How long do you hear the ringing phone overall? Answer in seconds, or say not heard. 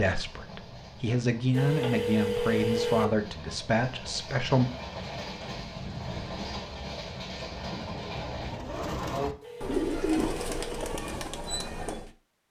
3 s.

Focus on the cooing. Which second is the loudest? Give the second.
10 s.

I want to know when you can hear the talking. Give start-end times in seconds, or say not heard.
0.0-4.7.